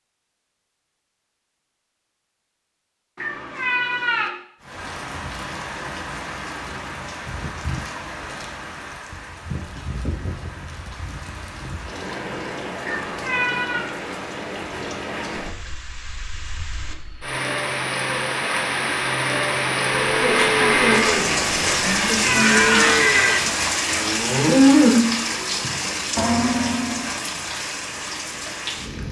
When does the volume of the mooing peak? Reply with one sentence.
The loudest moment of the mooing is at 25 seconds.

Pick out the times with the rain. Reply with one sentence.
You can hear the rain from 4.6 to 29.0 s.